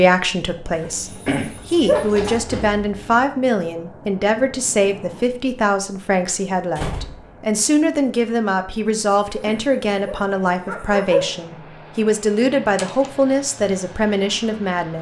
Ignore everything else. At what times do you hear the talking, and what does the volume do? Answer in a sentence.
You can hear the talking from 0.0 to 14.9 s, at a steady volume.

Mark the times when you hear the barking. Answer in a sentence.
You can hear the barking from 1.0 to 2.4 s and from 9.4 to 11.3 s.